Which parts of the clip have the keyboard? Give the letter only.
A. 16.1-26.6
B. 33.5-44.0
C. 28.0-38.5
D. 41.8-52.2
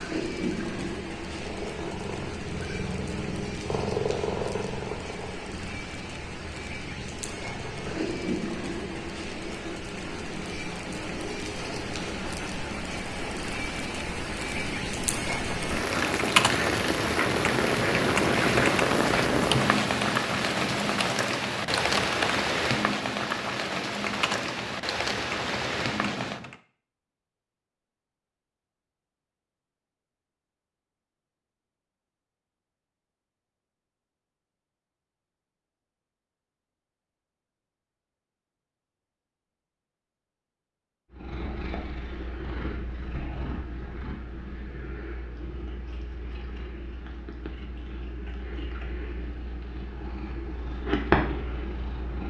A.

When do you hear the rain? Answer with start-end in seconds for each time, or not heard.
0.0-26.4.